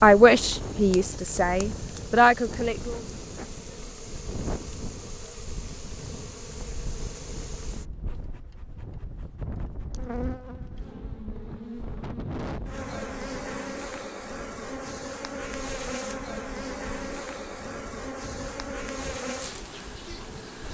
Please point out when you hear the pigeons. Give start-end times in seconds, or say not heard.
not heard.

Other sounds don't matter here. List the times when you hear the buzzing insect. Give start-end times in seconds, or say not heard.
0.0-20.6.